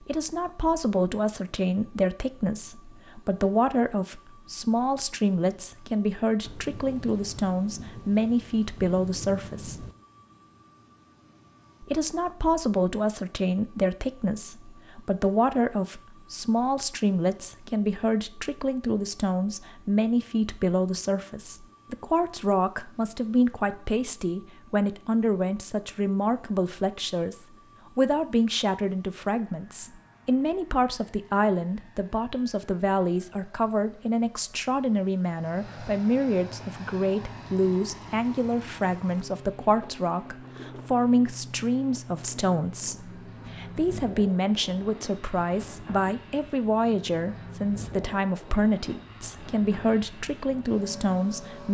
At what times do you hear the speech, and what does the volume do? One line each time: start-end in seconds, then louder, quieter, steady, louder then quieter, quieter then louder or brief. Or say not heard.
0.0-9.8 steady
11.8-51.6 steady.